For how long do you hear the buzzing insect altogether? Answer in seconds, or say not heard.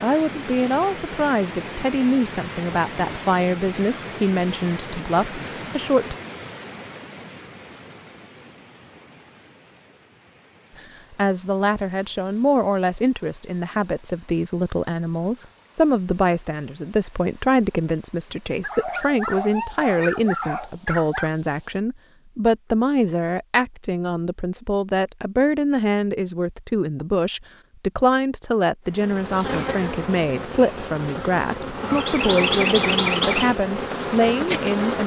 6 s.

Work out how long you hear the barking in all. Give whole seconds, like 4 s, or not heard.
3 s.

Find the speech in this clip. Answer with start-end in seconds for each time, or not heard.
0.0-6.2, 10.8-35.0.